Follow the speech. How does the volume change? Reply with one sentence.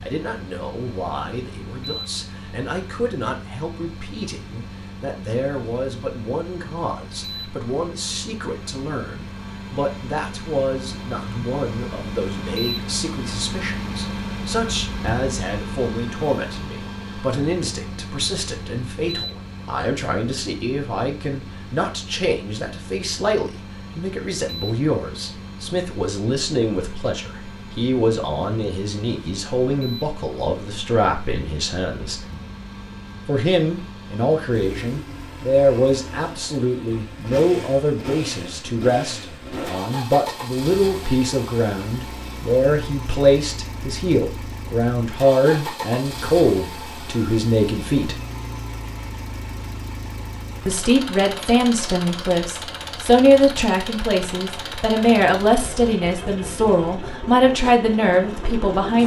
The loudness of the speech goes up.